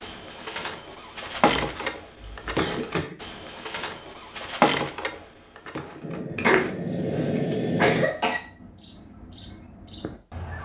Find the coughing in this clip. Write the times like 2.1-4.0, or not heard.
1.6-3.1, 6.3-8.4.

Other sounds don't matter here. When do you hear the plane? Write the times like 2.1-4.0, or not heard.
6.0-8.1.